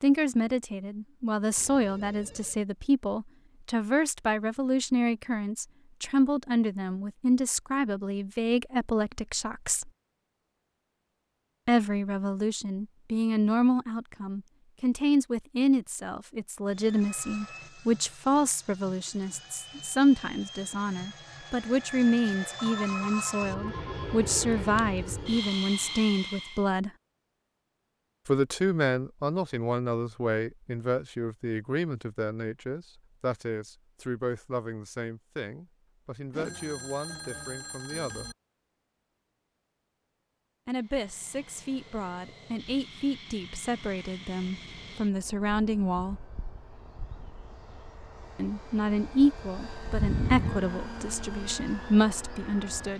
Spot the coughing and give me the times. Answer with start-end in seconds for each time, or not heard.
not heard.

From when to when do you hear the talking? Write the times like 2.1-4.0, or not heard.
0.0-9.9, 11.7-26.9, 28.2-38.3, 40.6-46.2, 48.4-52.9.